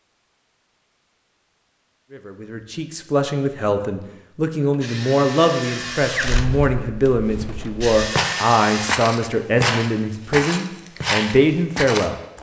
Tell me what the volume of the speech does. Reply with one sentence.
The volume of the speech stays about the same.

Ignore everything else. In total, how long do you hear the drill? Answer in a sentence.
You can hear the drill for 4 seconds altogether.